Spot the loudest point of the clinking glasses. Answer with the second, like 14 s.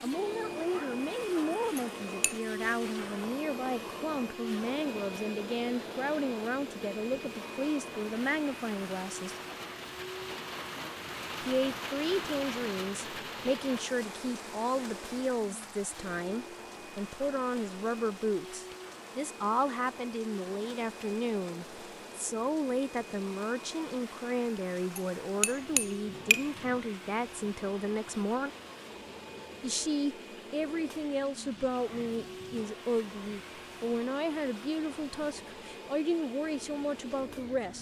26 s.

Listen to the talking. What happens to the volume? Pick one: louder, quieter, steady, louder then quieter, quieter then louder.
steady.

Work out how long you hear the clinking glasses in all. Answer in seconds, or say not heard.
2 s.